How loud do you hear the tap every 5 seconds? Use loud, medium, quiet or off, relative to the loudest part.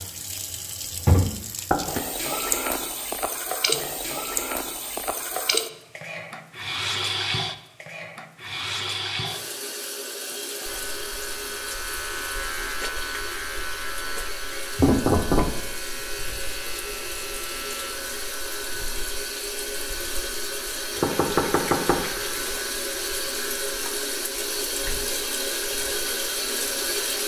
loud, loud, medium, medium, loud, loud.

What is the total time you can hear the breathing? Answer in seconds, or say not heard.
not heard.